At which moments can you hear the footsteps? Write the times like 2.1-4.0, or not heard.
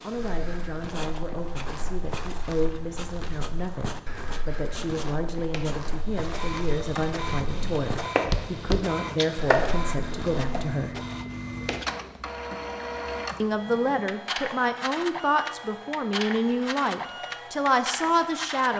0.1-10.6.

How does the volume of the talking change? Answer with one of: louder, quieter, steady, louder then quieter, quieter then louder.
louder.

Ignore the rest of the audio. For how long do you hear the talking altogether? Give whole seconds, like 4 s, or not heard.
16 s.